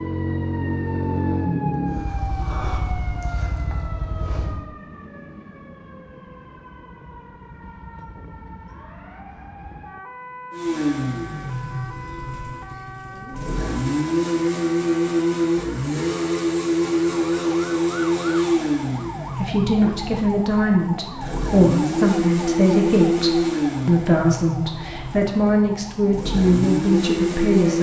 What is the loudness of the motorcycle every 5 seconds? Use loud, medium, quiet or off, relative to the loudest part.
medium, off, loud, loud, loud, loud.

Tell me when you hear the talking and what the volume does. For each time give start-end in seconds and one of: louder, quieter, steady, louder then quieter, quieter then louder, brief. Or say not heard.
19.4-27.7 steady.